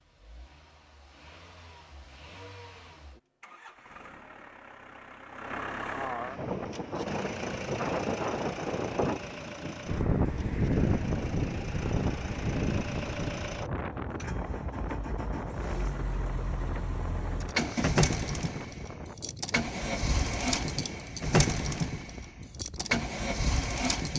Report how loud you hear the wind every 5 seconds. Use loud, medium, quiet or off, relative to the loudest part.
off, loud, loud, medium, quiet.